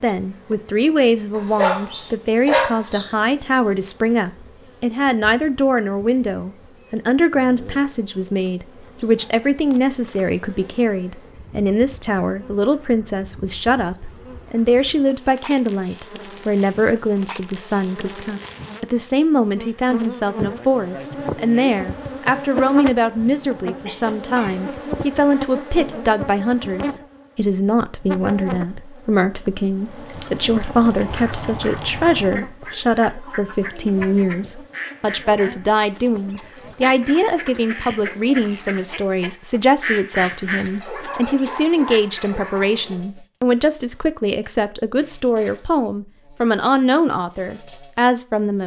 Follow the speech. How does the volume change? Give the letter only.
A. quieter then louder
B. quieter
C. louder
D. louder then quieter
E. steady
E.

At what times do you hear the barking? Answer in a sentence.
You can hear the barking from 1.4 to 3.0 s, from 23.2 to 24.6 s and from 40.8 to 43.0 s.